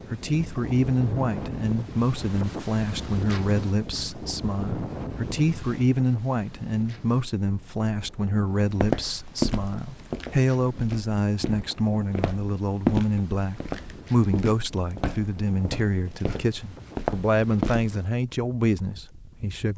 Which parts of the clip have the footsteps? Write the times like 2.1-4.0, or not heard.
8.7-17.9.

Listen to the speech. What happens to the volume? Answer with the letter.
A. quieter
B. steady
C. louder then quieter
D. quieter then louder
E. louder
B.